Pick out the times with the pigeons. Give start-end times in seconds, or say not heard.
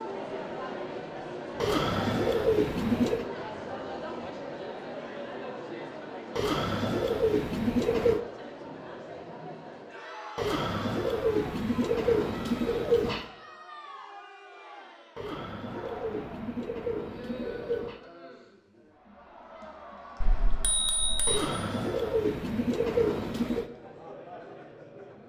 1.6-3.2, 6.3-8.2, 10.3-13.2, 15.2-18.0, 21.2-23.7.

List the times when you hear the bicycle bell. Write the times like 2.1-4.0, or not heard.
20.2-21.4.